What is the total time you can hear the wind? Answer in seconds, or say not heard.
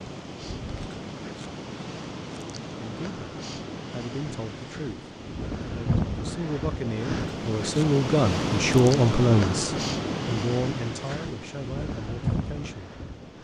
13 s.